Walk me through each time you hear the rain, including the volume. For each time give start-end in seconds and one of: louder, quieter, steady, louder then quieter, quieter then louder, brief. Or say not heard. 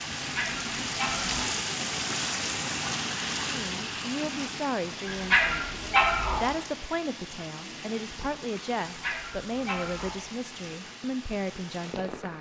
0.0-12.3 quieter.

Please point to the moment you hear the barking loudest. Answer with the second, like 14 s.
6 s.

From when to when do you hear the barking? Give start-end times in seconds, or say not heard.
0.1-1.4, 5.0-6.4, 8.9-10.2.